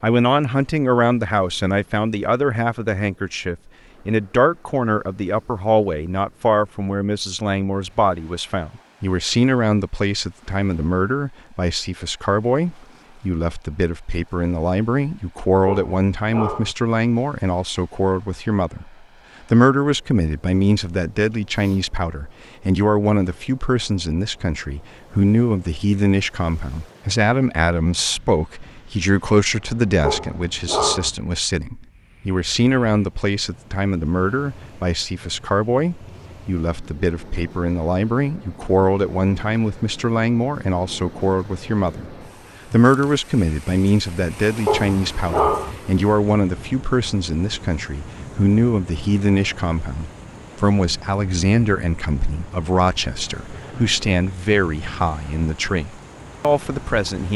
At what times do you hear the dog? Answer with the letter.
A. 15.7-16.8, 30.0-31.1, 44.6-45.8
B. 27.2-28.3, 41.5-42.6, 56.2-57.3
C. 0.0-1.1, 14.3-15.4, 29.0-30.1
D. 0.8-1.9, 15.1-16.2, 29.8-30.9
A.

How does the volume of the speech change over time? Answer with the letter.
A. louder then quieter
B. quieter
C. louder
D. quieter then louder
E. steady
E.